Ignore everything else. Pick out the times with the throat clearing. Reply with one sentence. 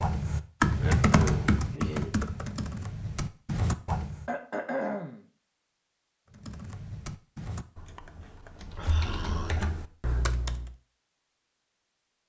You can hear the throat clearing from 0.8 to 2.1 s, from 4.2 to 5.2 s and from 8.8 to 9.8 s.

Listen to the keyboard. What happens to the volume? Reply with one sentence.
The loudness of the keyboard goes down, then up.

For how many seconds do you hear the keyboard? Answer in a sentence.
You can hear the keyboard for 9 seconds altogether.